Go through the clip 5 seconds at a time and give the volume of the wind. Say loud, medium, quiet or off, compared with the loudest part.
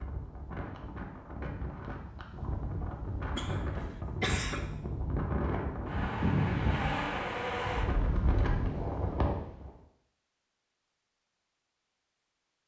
medium, loud, off.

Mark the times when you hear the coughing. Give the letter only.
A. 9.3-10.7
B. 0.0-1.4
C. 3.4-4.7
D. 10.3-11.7
C.